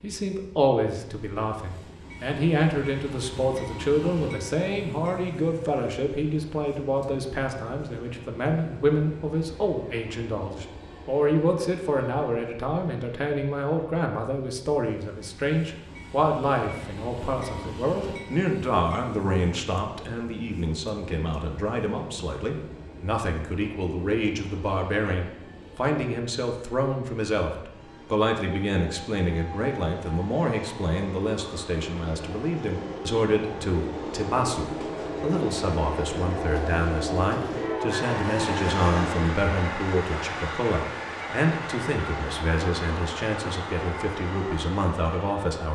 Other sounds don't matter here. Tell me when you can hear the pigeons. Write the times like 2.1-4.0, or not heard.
not heard.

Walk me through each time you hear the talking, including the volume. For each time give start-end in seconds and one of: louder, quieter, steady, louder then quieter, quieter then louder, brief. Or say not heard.
0.0-45.6 steady.